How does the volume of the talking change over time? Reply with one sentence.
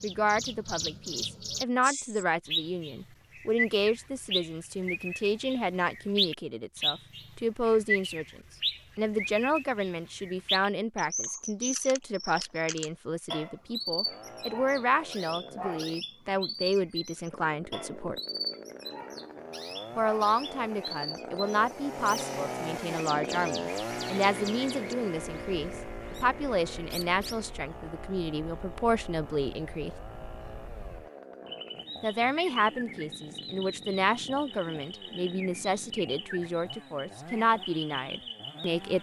The volume of the talking stays about the same.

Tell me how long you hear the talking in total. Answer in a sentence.
You can hear the talking for 35 seconds altogether.